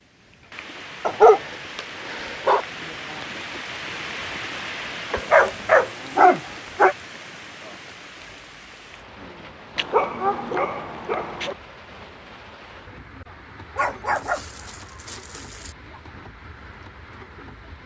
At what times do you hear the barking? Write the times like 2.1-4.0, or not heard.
1.1-2.6, 5.1-7.0, 9.8-11.6, 13.8-15.8.